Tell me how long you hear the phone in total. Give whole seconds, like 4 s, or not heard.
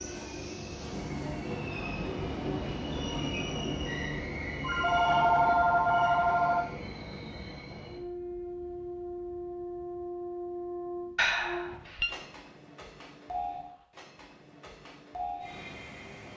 3 s.